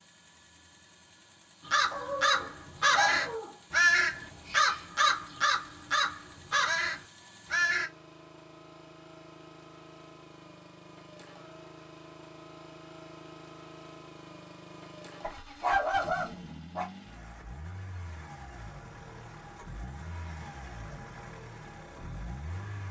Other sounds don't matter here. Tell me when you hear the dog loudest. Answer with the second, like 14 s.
16 s.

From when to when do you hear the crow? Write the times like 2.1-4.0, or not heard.
1.6-7.9.